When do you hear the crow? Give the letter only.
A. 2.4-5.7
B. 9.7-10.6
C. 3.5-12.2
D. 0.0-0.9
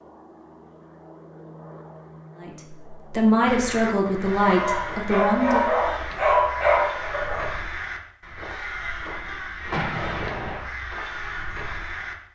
C.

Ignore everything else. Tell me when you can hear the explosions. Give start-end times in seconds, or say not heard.
9.7-10.6.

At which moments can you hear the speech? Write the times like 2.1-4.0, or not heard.
2.4-5.7.